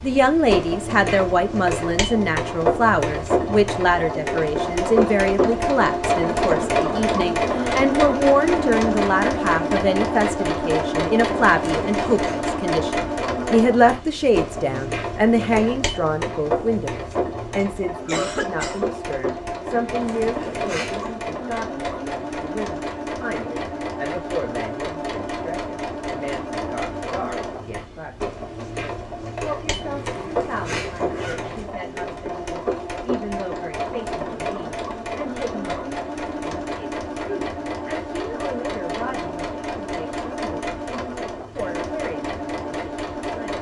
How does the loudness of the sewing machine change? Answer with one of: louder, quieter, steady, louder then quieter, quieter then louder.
quieter.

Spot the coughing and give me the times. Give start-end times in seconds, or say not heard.
17.6-18.9.